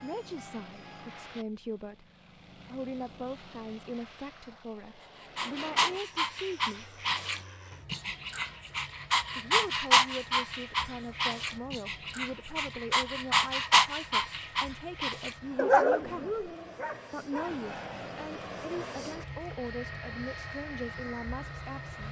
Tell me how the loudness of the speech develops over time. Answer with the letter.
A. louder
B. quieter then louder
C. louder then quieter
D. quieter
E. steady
E.